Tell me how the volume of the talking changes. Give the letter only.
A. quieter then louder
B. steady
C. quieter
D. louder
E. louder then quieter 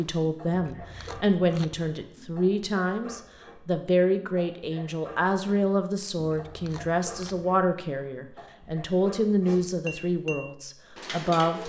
B.